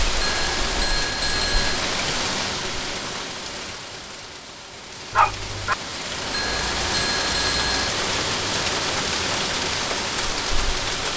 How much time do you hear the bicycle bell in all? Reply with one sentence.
You can hear the bicycle bell for 3 seconds altogether.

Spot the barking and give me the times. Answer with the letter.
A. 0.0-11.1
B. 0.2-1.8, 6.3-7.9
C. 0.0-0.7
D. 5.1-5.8
D.